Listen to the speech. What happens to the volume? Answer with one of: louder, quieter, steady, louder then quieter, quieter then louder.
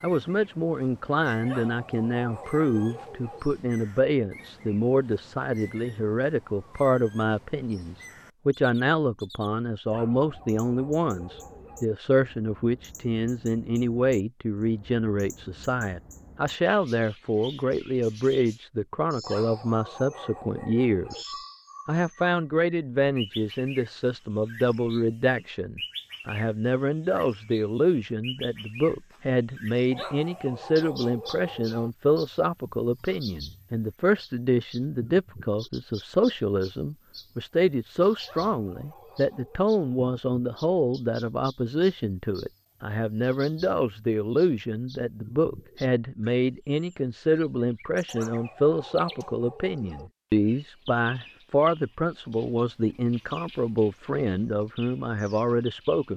steady.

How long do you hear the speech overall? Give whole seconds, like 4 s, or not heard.
56 s.